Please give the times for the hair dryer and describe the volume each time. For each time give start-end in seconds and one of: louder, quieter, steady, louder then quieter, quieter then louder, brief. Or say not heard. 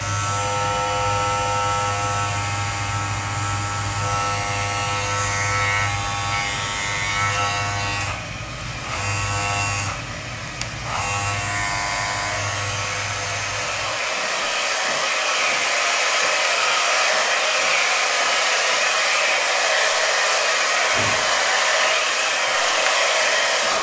0.0-23.7 louder.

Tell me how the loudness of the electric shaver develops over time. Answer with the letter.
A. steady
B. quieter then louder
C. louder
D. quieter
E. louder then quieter
D.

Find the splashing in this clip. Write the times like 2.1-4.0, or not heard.
not heard.